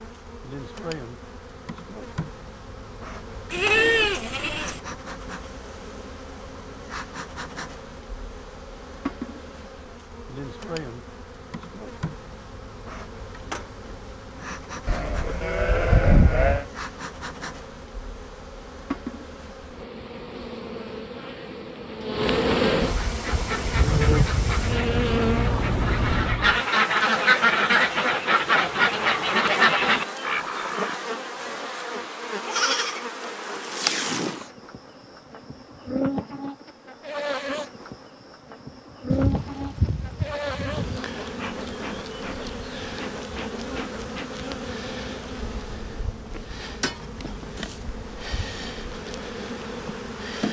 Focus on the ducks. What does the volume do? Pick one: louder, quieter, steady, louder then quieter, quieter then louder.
louder.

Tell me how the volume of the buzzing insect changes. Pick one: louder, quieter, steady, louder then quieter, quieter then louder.
louder then quieter.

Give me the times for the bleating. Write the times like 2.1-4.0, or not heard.
3.5-4.8, 14.8-16.6, 32.5-34.4, 39.1-41.0.